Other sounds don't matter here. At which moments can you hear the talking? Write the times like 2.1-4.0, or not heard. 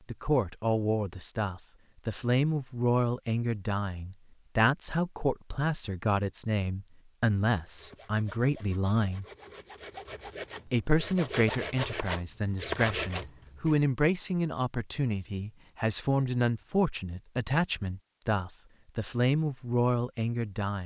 0.1-9.2, 10.7-20.8.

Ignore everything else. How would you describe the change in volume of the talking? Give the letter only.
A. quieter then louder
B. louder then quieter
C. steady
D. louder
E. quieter
C.